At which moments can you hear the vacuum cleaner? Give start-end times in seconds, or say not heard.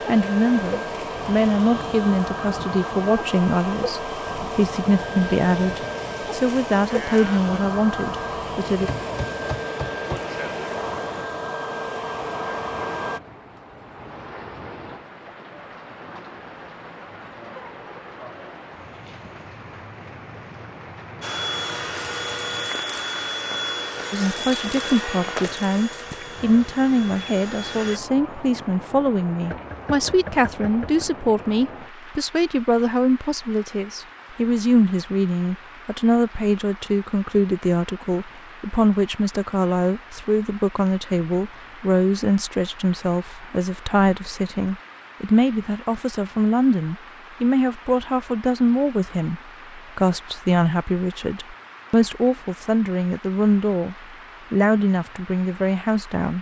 0.0-13.2, 21.2-28.0.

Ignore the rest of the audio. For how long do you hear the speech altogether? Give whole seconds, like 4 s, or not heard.
41 s.